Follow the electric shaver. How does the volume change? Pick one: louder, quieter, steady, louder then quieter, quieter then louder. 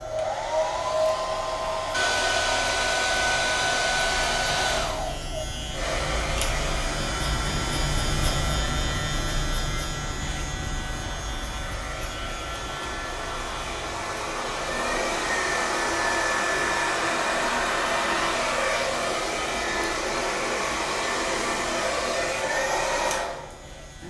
louder then quieter.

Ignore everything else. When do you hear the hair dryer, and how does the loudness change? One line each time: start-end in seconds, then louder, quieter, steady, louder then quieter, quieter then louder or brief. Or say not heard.
0.0-24.0 quieter then louder.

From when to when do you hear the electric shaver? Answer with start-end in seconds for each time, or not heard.
0.0-24.0.